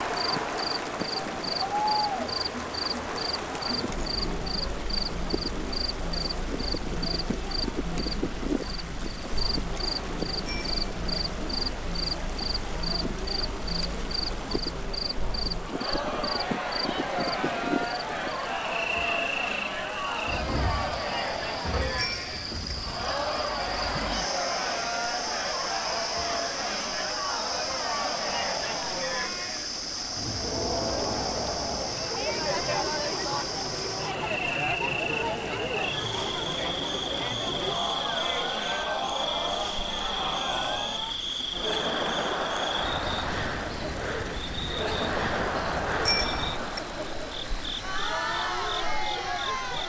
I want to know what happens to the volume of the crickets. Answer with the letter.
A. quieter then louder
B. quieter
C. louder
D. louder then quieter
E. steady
E.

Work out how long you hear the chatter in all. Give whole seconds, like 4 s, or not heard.
50 s.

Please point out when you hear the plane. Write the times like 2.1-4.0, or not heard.
not heard.